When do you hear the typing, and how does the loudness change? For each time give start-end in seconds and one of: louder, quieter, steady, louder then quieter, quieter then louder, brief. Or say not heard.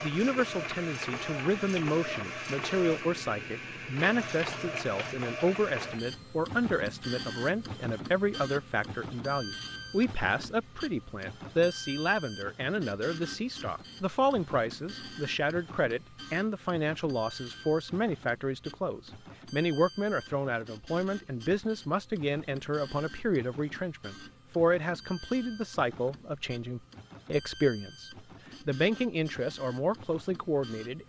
not heard.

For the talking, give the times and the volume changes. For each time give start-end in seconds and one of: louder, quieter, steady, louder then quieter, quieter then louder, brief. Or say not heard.
0.0-31.0 steady.